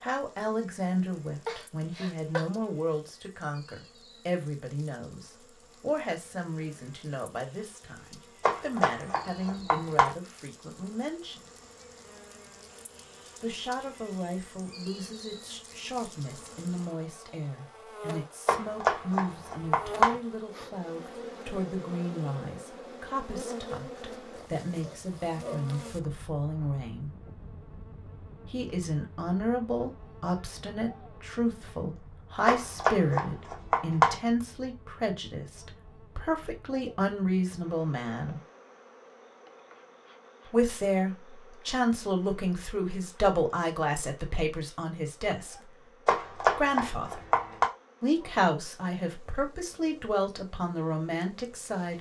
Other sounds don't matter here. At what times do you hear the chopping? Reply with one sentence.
The chopping can be heard from 8.4 to 10.2 s, from 18.4 to 20.1 s, from 32.5 to 34.1 s and from 46.0 to 47.6 s.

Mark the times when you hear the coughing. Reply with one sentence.
The coughing can be heard from 1.4 to 2.5 s.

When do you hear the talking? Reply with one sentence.
You can hear the talking from 0.0 to 11.4 s, from 13.4 to 27.1 s, from 28.5 to 38.4 s, from 40.5 to 45.7 s, from 46.4 to 47.2 s and from 48.0 to 51.9 s.